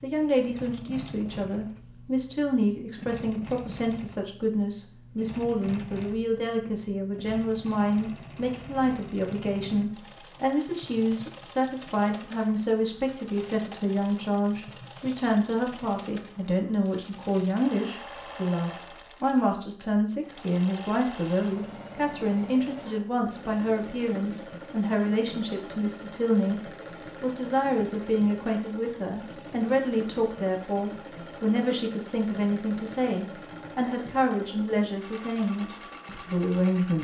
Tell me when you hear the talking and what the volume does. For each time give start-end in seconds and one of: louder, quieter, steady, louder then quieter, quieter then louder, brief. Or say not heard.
0.0-36.9 steady.